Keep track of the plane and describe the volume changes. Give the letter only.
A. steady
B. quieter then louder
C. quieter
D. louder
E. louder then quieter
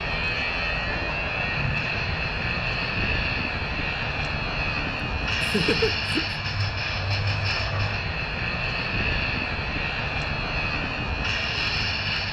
A.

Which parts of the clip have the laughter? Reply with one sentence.
You can hear the laughter from 5.4 to 6.4 s.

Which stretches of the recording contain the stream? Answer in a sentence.
The stream can't be heard in this clip.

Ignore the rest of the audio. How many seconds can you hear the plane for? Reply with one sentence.
You can hear the plane for 12 seconds altogether.